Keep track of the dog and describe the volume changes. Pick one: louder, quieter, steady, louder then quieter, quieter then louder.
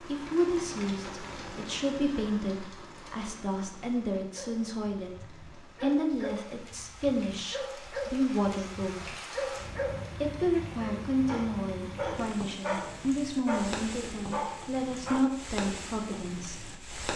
louder.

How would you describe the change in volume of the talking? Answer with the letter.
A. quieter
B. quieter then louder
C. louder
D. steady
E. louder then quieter
D.